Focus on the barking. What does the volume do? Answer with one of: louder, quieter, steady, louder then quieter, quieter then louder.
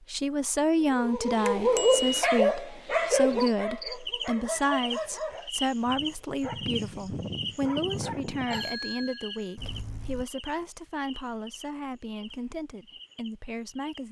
quieter.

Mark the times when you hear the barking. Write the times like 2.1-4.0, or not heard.
0.9-8.7.